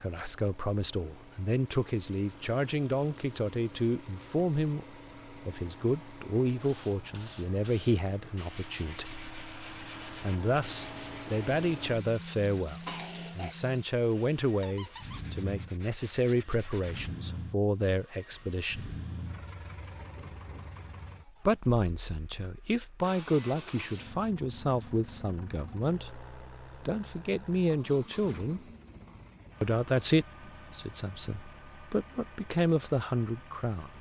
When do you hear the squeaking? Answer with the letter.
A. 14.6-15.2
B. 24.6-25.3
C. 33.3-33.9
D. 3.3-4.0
A.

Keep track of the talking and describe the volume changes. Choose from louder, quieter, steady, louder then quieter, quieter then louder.
steady.